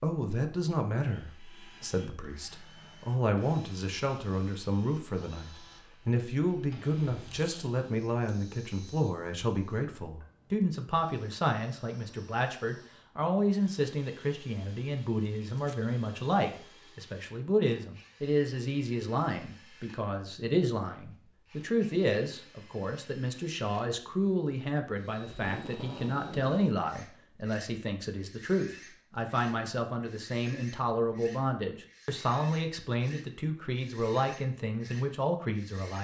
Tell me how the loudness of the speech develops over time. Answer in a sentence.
The loudness of the speech stays about the same.